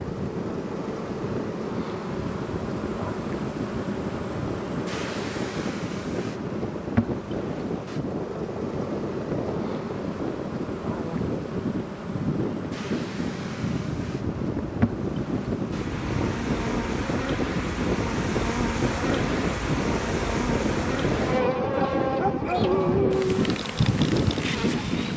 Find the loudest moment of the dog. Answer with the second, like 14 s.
23 s.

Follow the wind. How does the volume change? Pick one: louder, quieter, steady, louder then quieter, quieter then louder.
louder.